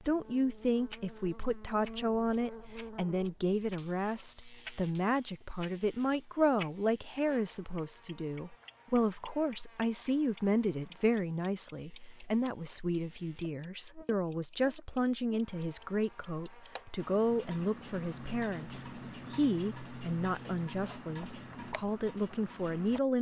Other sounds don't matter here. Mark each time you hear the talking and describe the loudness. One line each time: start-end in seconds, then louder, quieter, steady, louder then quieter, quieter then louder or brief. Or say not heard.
0.0-23.1 steady.